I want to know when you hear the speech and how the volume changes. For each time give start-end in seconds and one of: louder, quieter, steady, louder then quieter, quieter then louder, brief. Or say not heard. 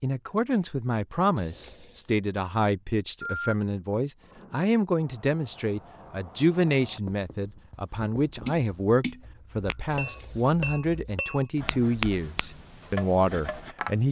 0.0-14.0 steady.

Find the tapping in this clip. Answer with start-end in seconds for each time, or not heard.
8.4-14.0.